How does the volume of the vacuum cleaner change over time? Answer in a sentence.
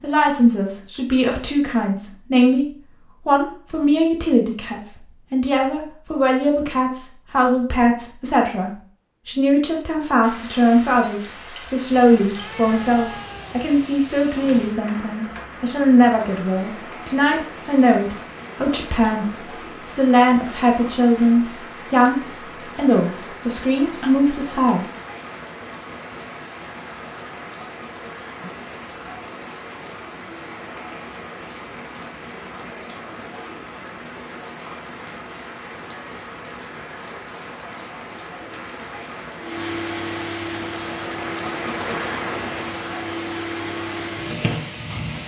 The volume of the vacuum cleaner goes down, then up.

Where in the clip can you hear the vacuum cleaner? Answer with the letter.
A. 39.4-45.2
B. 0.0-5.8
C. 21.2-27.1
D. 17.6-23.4
A.